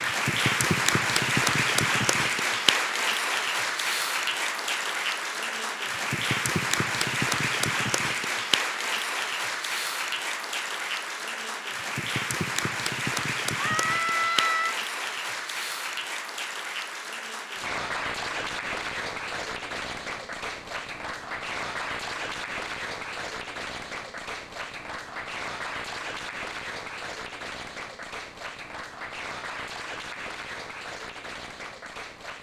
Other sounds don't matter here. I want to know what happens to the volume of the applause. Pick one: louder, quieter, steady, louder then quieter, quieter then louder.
quieter.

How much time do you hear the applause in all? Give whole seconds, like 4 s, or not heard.
32 s.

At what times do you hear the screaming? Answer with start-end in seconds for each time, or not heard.
13.6-14.8.